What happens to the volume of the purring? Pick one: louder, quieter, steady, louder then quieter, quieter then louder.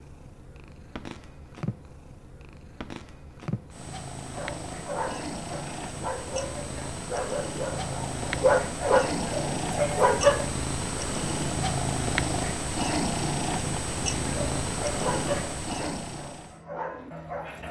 louder.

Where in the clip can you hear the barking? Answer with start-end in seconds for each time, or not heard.
4.2-10.4, 14.2-17.6.